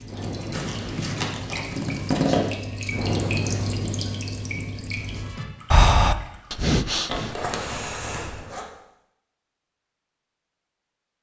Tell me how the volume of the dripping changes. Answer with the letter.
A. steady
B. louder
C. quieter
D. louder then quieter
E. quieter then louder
D.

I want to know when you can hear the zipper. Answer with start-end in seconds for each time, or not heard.
0.5-2.5, 7.0-8.7.